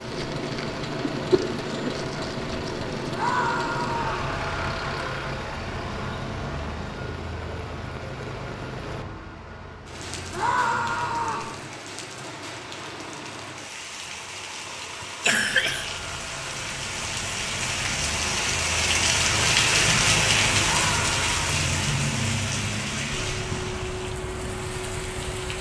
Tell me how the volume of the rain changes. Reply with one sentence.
The volume of the rain goes up.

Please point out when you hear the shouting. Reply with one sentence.
The shouting can be heard from 3.1 to 4.2 s, from 10.3 to 11.5 s and from 20.8 to 21.3 s.